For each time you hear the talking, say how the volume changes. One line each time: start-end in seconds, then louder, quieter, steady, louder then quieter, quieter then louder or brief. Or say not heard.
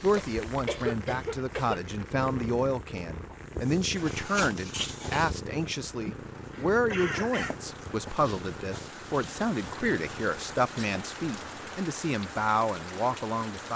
0.0-13.7 steady.